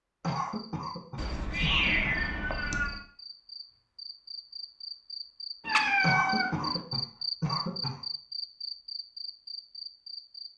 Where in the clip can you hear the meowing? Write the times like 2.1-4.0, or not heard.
1.1-3.0, 5.6-6.8.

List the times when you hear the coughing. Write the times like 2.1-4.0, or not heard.
0.2-2.1, 6.0-8.0.